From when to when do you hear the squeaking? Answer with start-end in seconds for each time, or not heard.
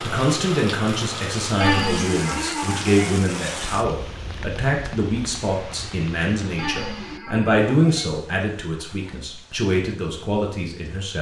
1.6-3.0, 6.5-8.1.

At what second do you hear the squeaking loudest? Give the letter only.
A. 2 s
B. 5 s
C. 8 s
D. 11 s
A.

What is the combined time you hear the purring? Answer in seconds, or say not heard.
not heard.